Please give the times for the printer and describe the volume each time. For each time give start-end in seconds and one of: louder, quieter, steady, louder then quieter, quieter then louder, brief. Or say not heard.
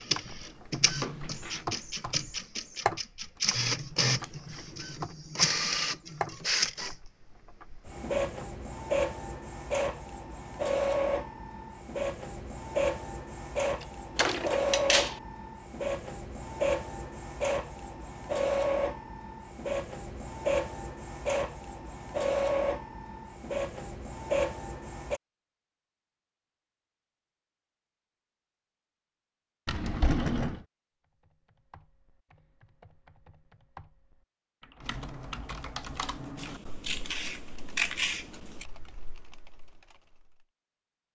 0.0-25.2 steady.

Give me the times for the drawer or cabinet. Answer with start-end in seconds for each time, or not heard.
1.0-1.6, 14.2-15.2, 29.6-30.6.